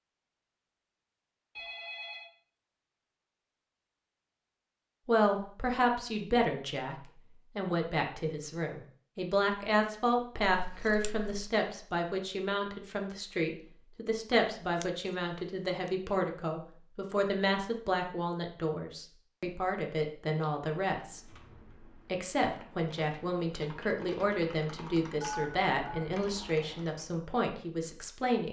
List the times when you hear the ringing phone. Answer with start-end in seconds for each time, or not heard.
1.6-2.3, 25.2-26.1.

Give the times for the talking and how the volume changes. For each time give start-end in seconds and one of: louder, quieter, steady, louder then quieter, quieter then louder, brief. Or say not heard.
5.0-28.4 steady.